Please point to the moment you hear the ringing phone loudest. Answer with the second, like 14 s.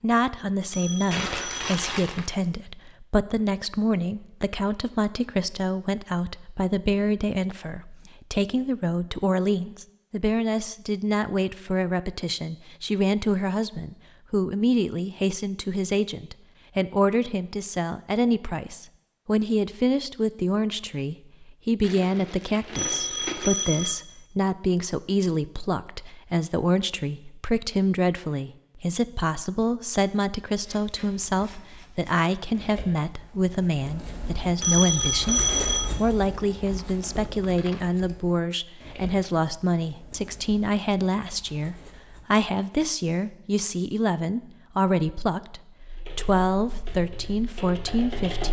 35 s.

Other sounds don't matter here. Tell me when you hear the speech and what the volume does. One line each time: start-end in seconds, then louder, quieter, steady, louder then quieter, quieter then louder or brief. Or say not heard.
0.0-48.4 steady.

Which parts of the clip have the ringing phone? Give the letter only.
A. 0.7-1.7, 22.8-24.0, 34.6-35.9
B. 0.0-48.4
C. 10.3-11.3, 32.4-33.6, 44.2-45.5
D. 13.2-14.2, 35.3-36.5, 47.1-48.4
A.